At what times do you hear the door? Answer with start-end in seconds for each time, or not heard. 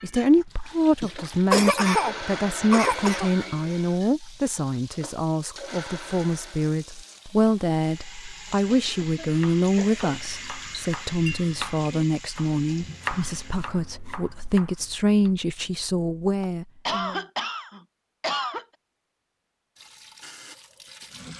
not heard.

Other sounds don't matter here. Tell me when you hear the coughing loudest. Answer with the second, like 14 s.
2 s.